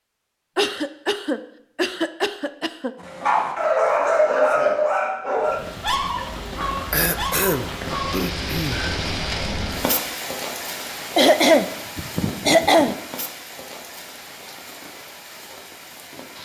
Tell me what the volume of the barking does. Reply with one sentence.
The loudness of the barking goes down.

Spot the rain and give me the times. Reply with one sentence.
The rain can be heard from 5.4 to 16.4 s.